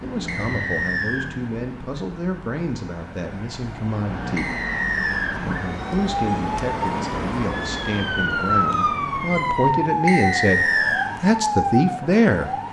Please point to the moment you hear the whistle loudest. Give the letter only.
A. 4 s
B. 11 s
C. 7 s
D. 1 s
B.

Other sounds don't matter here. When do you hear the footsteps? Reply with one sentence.
You can't hear the footsteps here.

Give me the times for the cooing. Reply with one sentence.
The cooing can't be heard in this clip.